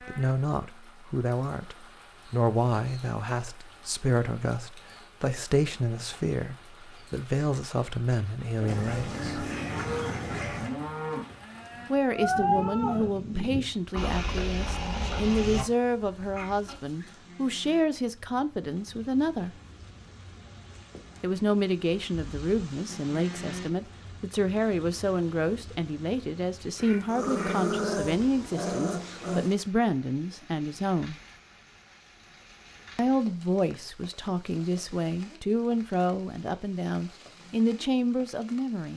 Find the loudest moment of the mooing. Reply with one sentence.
The loudest moment of the mooing is at 12 seconds.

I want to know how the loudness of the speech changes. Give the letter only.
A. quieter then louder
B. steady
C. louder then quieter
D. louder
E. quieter
B.